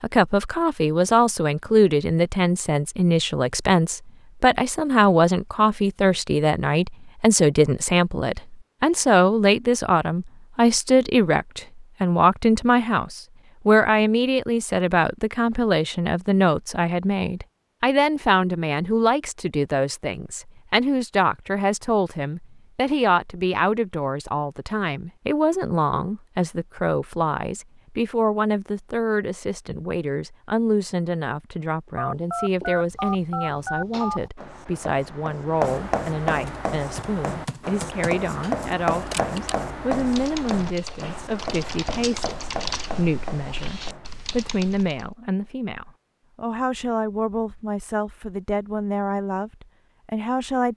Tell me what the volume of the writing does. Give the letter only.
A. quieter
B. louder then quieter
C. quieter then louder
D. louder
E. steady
B.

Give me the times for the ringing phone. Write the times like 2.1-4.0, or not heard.
31.9-34.2.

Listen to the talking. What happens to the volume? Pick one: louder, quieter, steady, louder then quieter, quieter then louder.
quieter.